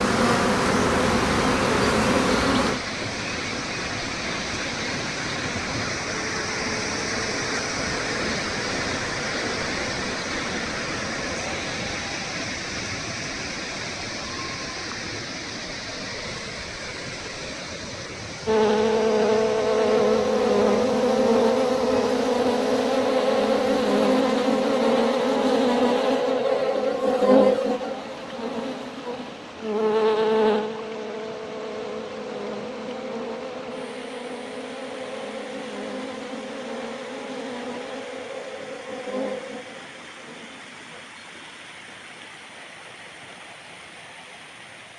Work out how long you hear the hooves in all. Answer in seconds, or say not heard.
not heard.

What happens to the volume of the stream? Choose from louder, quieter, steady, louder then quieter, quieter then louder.
quieter.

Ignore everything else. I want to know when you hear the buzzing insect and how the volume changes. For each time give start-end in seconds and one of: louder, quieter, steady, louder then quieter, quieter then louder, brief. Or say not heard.
0.0-12.0 quieter
18.4-41.1 quieter.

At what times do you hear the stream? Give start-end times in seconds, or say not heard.
0.0-44.9.